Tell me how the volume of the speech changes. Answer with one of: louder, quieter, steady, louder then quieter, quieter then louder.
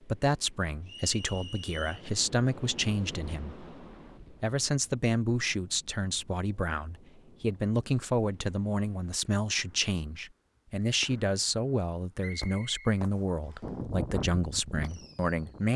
steady.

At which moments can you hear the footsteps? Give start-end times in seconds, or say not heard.
not heard.